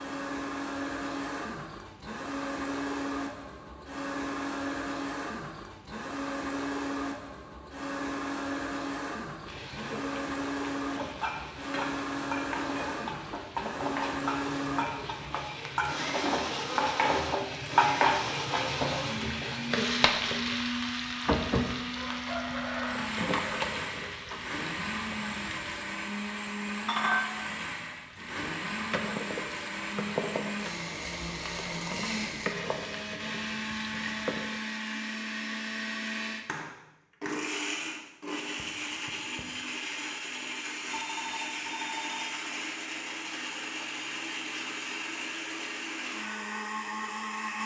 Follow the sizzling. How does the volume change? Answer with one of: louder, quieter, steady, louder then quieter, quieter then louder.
louder then quieter.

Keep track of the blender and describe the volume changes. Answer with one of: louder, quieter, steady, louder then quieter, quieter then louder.
steady.